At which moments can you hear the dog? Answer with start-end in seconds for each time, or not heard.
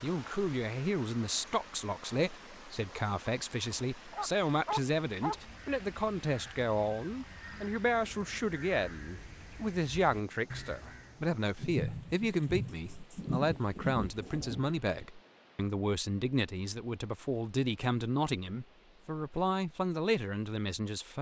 4.1-5.4.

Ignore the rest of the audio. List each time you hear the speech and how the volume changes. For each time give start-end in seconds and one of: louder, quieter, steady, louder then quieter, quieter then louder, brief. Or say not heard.
0.0-21.1 steady.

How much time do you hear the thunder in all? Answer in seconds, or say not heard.
3 s.